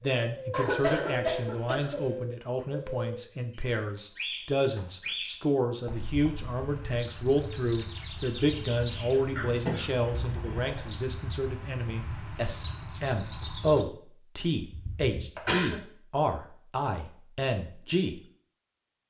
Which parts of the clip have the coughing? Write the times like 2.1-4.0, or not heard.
0.5-2.1, 9.3-10.8, 14.7-15.8.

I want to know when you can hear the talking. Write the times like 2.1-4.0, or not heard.
0.0-18.2.